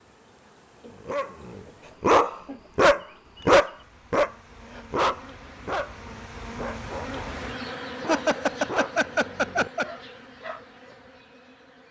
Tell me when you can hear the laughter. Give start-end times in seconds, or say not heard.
0.8-2.7, 8.1-9.9.